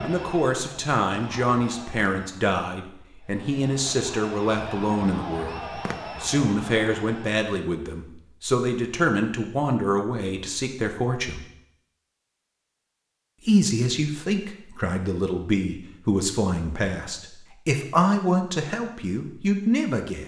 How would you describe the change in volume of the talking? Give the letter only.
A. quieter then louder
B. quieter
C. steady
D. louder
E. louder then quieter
C.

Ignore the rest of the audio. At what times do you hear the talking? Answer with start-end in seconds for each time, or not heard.
0.0-11.4, 13.4-20.2.